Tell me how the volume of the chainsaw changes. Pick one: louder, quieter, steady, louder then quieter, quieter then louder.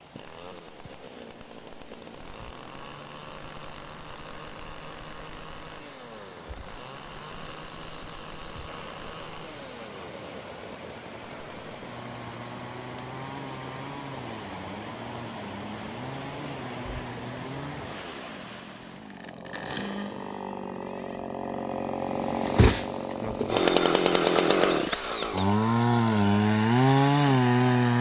louder.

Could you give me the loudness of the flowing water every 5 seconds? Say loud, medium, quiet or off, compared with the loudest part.
medium, medium, loud, loud, off, off.